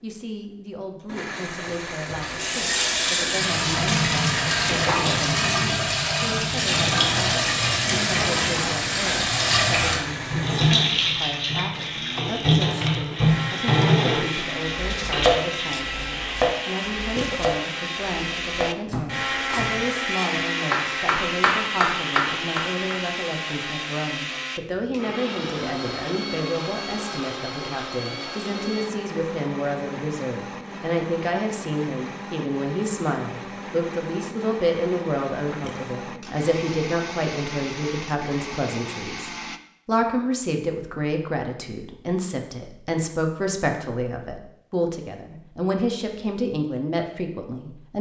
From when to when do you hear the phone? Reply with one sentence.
The phone can't be heard in this clip.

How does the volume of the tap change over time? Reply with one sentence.
The loudness of the tap stays about the same.